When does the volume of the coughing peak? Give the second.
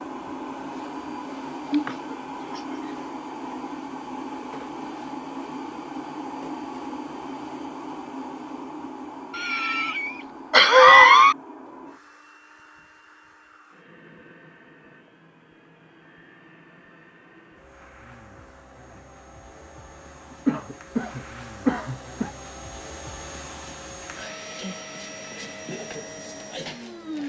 11 s.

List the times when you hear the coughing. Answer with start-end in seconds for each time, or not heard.
1.7-2.9, 9.3-11.3, 20.4-22.3.